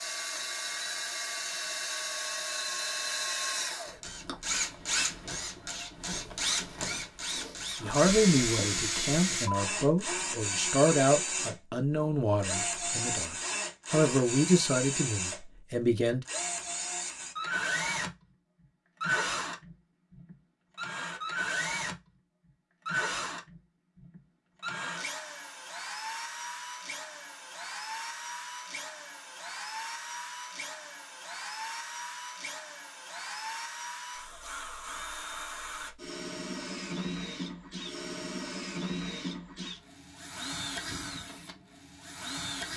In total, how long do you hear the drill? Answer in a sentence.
The drill can be heard for 43 seconds in total.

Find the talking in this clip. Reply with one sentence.
The talking can be heard from 7.8 to 16.2 s.